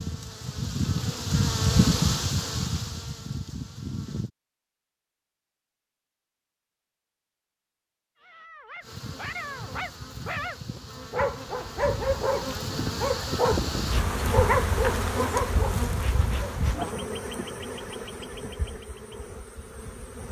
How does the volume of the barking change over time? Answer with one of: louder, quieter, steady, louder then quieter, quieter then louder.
louder.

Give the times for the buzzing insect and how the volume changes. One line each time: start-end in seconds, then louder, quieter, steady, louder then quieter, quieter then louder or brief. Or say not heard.
0.0-4.3 louder then quieter
8.8-20.2 louder then quieter.